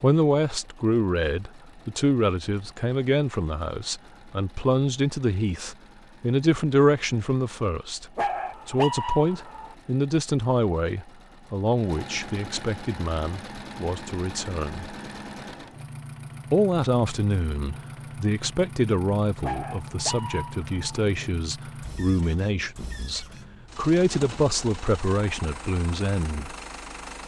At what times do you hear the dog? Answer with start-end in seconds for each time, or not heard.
8.2-9.8, 19.4-21.0.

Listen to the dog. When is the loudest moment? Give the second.
9 s.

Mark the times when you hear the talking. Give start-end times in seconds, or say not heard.
0.0-14.9, 16.5-26.6.